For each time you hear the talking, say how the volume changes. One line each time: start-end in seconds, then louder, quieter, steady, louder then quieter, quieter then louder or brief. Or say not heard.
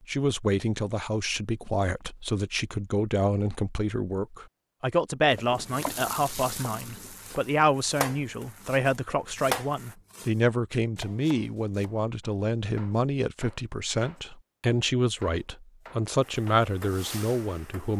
0.1-17.9 steady.